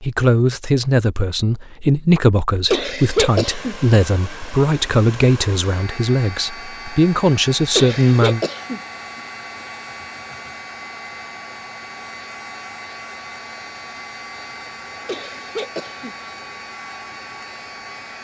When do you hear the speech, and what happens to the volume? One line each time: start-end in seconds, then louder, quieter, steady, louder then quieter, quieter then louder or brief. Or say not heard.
0.0-8.4 steady.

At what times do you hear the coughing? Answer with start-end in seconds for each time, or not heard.
2.7-3.8, 7.8-8.8, 15.1-16.1.